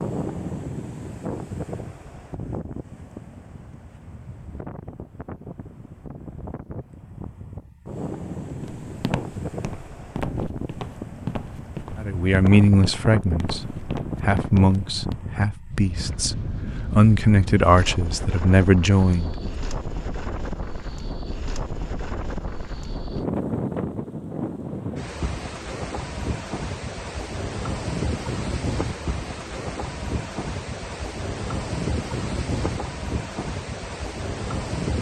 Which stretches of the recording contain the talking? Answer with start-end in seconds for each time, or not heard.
11.9-19.5.